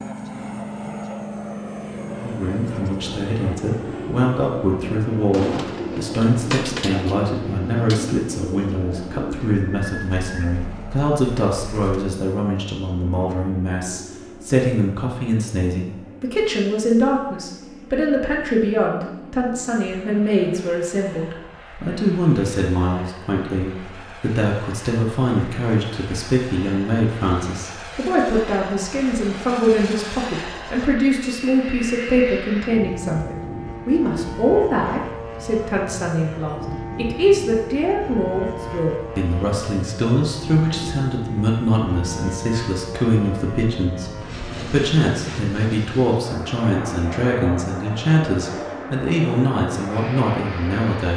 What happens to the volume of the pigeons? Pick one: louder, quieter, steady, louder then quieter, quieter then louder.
quieter.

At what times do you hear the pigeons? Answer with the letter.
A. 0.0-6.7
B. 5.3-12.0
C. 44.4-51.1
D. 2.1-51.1
B.